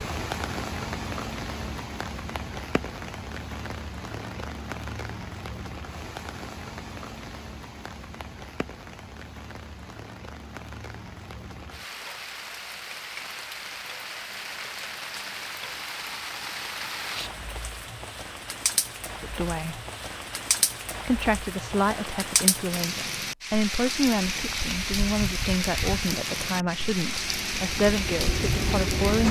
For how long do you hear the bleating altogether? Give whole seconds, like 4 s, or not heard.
not heard.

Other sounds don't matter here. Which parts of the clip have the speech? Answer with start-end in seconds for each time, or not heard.
19.2-19.8, 21.1-29.2.